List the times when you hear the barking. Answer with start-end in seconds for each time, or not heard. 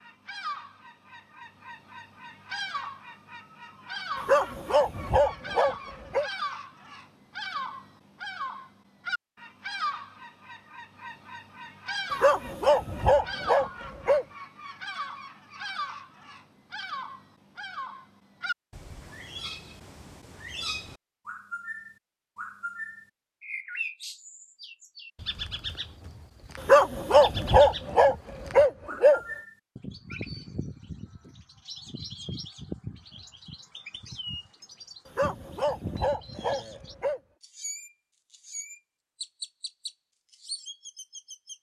4.2-6.3, 12.1-14.2, 26.6-29.2, 35.0-37.2.